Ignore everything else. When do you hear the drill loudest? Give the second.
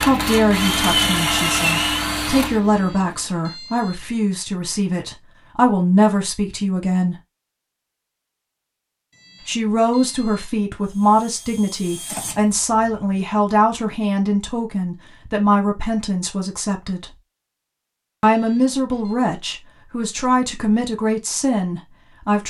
1 s.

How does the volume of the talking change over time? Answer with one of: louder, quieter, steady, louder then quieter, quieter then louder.
steady.